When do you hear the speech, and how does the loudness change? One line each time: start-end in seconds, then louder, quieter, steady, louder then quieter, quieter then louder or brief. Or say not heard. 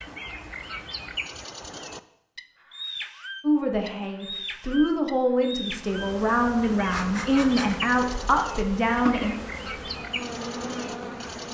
3.4-9.3 louder.